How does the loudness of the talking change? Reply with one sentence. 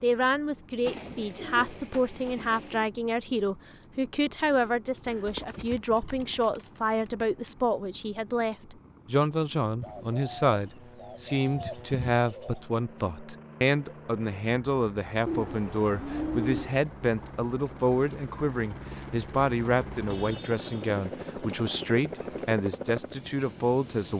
The volume of the talking stays about the same.